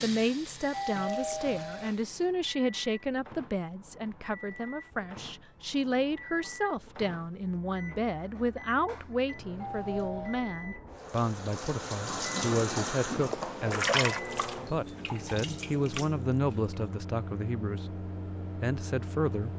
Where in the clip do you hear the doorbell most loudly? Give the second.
1 s.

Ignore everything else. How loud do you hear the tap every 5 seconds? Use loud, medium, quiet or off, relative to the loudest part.
medium, off, loud, medium.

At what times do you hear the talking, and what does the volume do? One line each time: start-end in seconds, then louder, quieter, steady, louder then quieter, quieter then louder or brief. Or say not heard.
0.0-19.5 steady.